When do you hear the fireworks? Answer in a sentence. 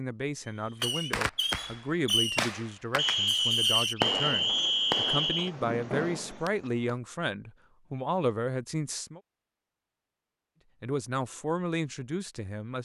The fireworks can be heard from 0.8 to 7.0 s.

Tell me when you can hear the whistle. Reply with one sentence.
You can hear the whistle from 3.0 to 5.5 s.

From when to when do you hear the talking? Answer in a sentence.
You can hear the talking from 0.0 to 9.2 s and from 10.8 to 12.7 s.